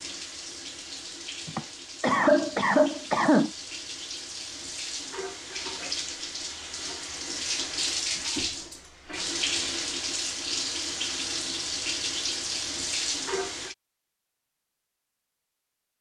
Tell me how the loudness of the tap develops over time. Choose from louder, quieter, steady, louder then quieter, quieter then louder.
louder.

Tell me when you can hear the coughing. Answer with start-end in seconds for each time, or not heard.
1.4-3.5.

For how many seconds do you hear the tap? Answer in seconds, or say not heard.
14 s.